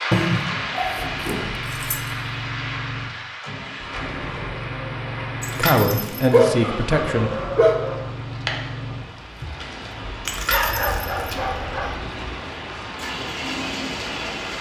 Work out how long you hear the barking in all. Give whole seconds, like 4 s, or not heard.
5 s.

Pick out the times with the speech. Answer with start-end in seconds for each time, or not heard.
5.5-7.3.